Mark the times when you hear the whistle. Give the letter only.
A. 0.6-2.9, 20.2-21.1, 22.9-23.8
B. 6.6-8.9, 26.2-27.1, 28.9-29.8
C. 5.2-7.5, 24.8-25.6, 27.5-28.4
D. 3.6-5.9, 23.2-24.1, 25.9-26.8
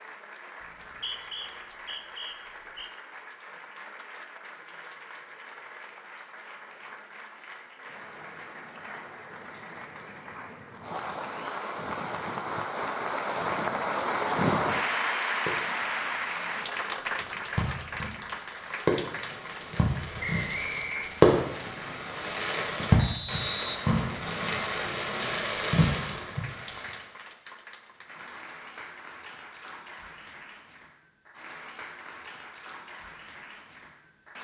A.